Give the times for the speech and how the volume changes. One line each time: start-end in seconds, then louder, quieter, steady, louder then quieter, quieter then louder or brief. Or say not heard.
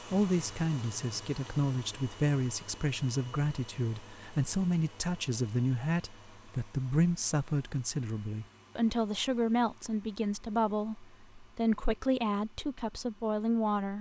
0.0-13.9 steady.